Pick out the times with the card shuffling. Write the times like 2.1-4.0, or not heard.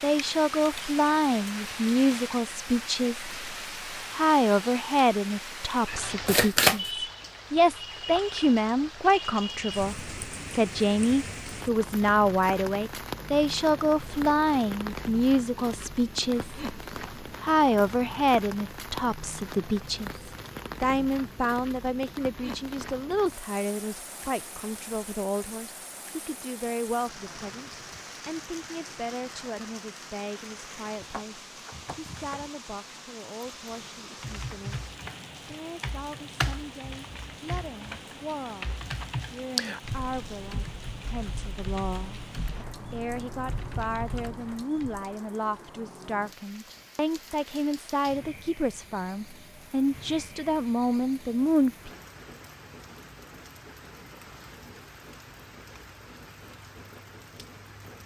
6.2-6.9, 30.9-32.4.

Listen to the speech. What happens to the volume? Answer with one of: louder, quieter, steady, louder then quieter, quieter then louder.
quieter then louder.